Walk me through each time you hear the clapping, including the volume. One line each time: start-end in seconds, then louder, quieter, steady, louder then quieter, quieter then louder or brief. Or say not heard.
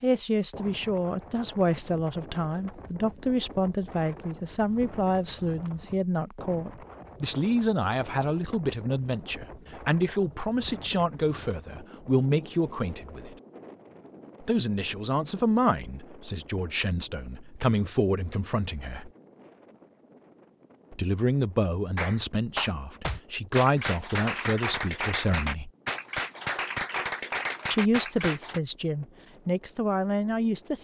21.9-28.6 steady.